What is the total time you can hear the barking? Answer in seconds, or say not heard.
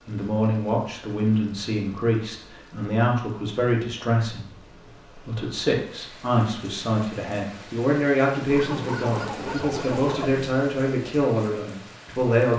2 s.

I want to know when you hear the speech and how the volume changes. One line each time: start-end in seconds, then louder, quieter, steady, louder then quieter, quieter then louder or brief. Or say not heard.
0.0-12.5 steady.